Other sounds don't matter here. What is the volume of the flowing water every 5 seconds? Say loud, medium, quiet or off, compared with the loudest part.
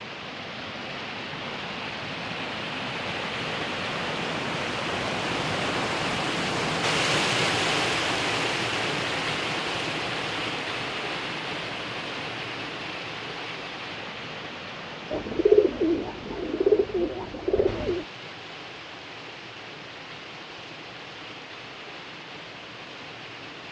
medium, loud, medium, quiet, quiet.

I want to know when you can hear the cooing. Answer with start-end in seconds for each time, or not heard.
15.1-18.1.